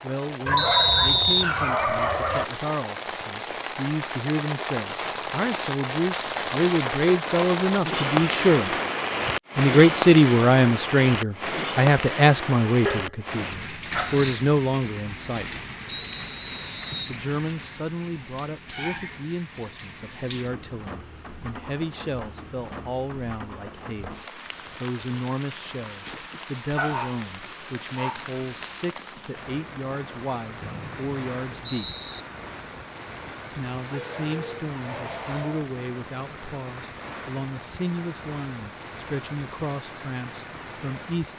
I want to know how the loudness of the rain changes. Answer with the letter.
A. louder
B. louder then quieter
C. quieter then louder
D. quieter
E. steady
D.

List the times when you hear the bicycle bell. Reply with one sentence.
You can't hear the bicycle bell here.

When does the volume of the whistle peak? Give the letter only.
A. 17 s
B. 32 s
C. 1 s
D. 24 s
C.